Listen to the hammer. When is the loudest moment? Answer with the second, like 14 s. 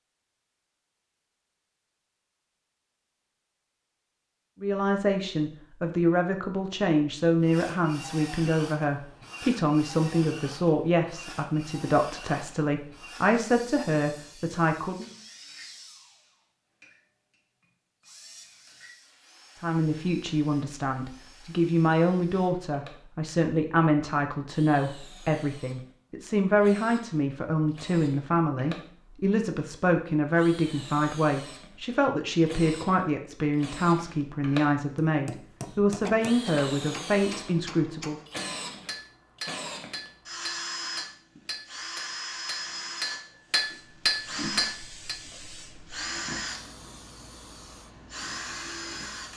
44 s.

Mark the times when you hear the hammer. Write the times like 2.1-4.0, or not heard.
35.0-45.1.